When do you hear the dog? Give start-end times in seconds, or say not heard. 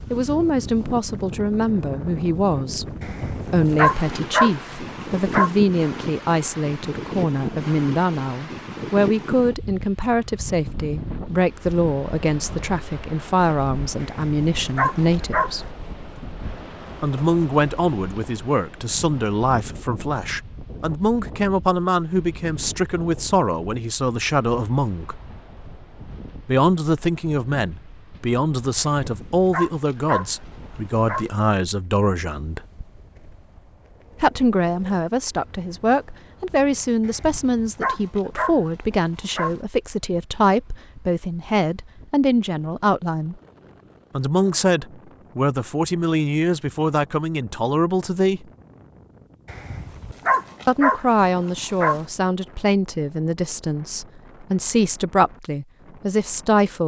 3.0-5.5, 14.0-15.5, 28.8-31.2, 37.0-39.5, 49.5-52.0.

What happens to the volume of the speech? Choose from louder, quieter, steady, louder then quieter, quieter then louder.
steady.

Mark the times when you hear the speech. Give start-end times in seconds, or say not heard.
0.1-15.7, 17.0-25.2, 26.4-32.6, 34.2-43.4, 44.1-48.5, 50.6-56.8.